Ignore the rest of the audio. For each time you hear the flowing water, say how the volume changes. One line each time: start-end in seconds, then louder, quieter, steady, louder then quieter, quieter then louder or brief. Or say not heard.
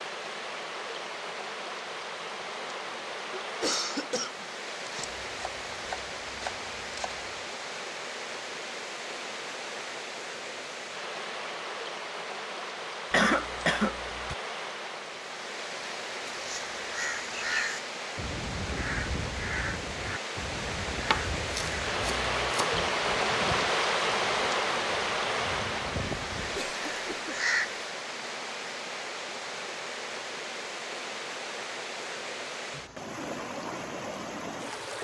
0.0-34.9 louder then quieter.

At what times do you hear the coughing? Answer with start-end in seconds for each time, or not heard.
3.3-5.1, 13.1-14.3, 26.6-27.4.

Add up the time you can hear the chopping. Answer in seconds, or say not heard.
4 s.